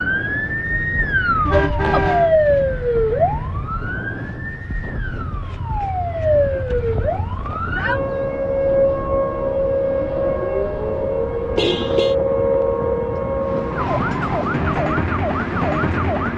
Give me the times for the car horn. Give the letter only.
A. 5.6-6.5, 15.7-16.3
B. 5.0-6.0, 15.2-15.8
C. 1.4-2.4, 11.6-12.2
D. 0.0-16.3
C.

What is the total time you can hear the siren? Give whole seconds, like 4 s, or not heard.
16 s.